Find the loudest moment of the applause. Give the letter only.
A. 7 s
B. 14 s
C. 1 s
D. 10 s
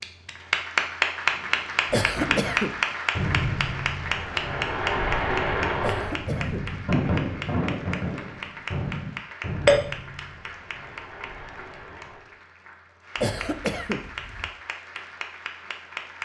C.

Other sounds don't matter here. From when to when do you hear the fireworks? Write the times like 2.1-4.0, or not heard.
1.3-12.3.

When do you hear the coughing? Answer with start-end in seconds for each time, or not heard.
1.9-2.8, 5.8-6.8, 13.2-14.5.